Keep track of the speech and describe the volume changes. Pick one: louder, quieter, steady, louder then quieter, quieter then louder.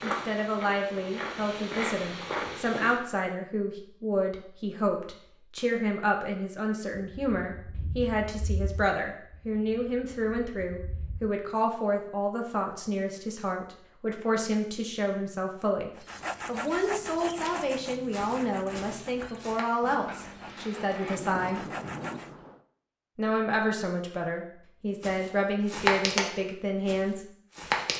steady.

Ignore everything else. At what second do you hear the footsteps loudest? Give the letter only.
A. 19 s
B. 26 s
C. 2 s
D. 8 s
B.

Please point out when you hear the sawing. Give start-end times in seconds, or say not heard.
15.9-22.3.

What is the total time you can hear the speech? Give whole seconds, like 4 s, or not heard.
26 s.